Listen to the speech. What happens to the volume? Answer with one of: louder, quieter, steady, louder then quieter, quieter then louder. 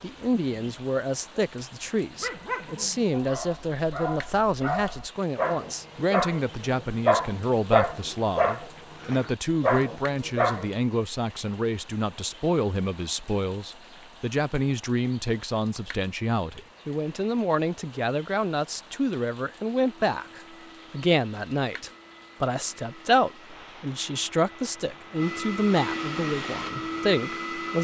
steady.